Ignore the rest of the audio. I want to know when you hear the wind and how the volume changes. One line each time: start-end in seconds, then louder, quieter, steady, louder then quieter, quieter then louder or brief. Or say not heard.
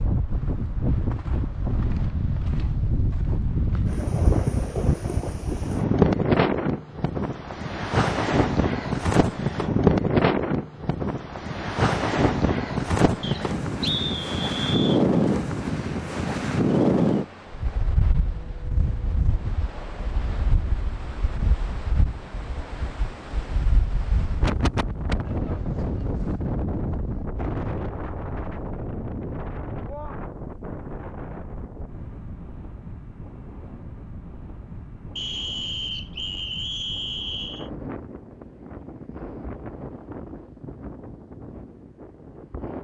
0.0-42.7 quieter.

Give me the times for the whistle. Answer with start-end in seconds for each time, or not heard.
13.2-15.1, 35.1-37.7.